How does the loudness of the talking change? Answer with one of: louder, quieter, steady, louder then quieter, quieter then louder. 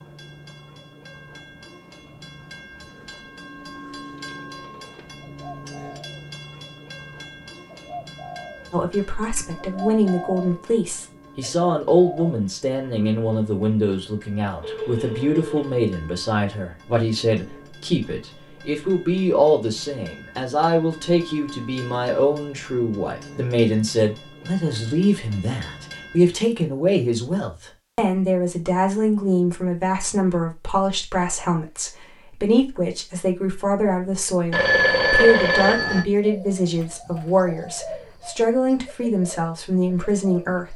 steady.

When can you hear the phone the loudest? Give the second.
35 s.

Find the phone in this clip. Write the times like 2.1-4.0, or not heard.
4.2-5.0, 14.6-15.8, 34.5-36.0.